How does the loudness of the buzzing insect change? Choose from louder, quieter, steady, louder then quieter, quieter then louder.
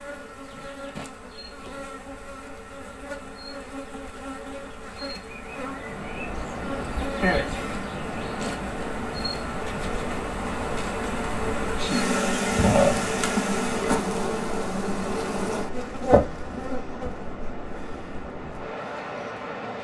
louder then quieter.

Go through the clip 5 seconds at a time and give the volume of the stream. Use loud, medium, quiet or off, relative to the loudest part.
off, loud, loud, loud.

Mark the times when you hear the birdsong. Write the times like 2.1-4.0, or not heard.
not heard.